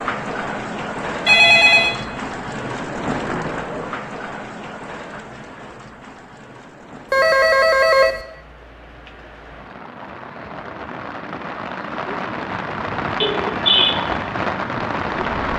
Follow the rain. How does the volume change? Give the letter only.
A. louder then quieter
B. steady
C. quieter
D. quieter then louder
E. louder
D.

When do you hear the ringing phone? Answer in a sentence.
You can hear the ringing phone from 1.2 to 1.9 s, from 7.1 to 8.2 s and from 13.2 to 13.9 s.